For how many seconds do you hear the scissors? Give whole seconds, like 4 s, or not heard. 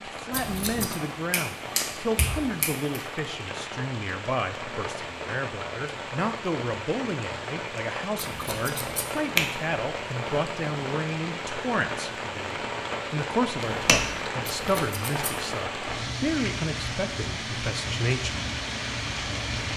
3 s.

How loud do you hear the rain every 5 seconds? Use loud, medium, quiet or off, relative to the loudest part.
medium, loud, loud, loud.